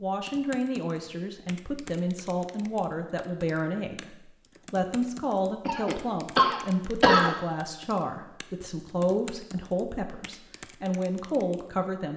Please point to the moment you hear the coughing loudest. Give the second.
7 s.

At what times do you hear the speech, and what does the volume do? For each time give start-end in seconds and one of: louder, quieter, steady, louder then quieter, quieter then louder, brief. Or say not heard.
0.0-12.1 steady.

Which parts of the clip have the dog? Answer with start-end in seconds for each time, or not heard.
not heard.